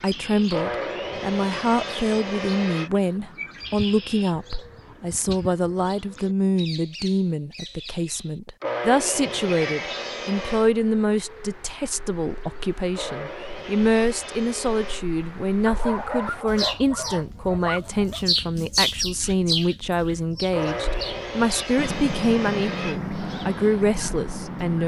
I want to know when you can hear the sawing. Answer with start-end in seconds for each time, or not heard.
0.5-2.9, 8.6-10.8, 12.9-15.1, 20.5-23.0.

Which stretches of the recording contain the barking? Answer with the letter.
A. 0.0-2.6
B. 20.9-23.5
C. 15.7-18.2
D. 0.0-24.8
C.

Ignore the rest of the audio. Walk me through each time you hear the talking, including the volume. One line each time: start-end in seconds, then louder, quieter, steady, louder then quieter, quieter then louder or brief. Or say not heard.
0.0-24.8 steady.